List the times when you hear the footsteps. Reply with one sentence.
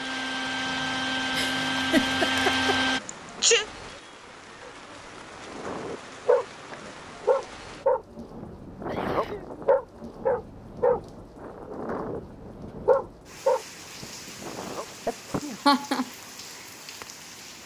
You can't hear the footsteps here.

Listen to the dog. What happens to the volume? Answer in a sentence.
The loudness of the dog goes down, then up.